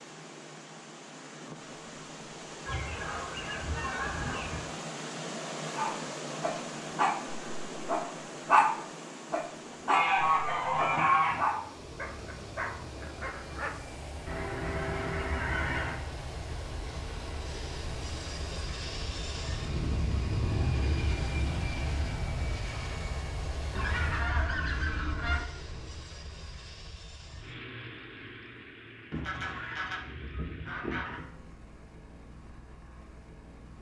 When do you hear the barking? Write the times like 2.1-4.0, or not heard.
5.8-13.8.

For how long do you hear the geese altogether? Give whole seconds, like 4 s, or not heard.
9 s.